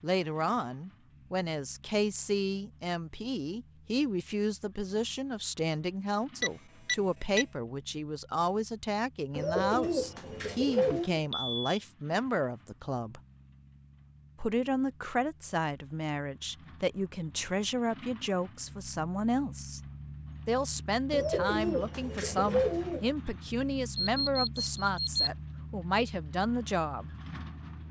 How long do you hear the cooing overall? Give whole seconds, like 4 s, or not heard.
4 s.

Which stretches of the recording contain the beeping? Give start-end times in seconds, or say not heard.
6.4-7.5, 10.9-11.6, 23.9-25.3.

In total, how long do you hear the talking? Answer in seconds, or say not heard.
25 s.